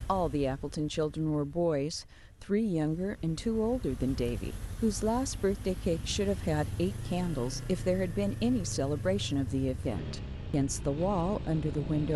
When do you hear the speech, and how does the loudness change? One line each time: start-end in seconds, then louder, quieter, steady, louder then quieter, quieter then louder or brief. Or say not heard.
0.1-12.1 steady.